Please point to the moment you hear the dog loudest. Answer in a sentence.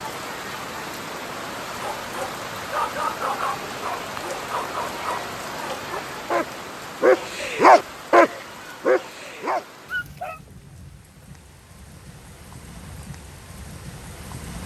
The loudest moment of the dog is at 8 seconds.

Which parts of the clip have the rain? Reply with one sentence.
The rain can be heard from 0.0 to 14.6 s.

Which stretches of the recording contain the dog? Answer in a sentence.
The dog can be heard from 1.8 to 10.4 s.